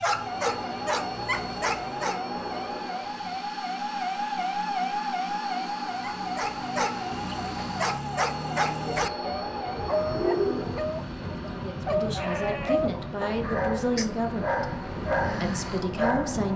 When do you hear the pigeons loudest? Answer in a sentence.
The volume of the pigeons peaks at 10 seconds.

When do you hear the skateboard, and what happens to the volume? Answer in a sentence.
You can't hear the skateboard here.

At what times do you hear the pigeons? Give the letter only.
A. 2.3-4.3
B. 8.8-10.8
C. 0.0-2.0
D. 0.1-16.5
B.